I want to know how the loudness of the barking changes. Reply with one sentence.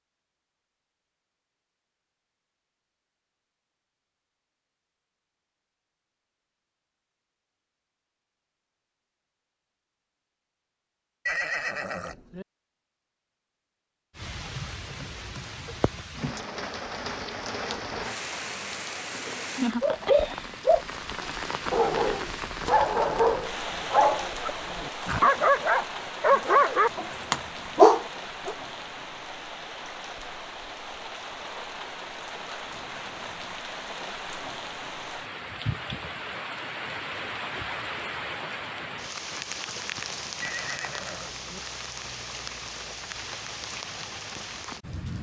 The volume of the barking goes up.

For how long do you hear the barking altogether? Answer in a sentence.
You can hear the barking for 9 seconds altogether.